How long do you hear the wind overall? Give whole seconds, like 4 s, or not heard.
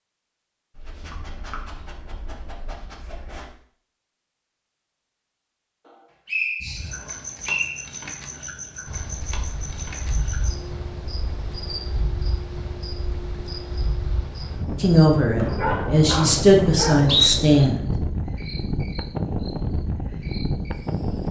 12 s.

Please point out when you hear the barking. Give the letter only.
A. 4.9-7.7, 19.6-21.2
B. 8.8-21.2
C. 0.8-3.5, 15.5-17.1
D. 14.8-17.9
C.